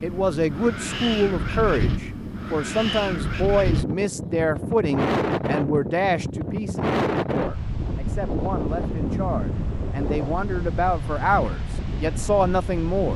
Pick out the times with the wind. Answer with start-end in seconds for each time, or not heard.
0.0-13.1.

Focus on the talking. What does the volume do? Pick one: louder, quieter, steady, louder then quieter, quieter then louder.
quieter then louder.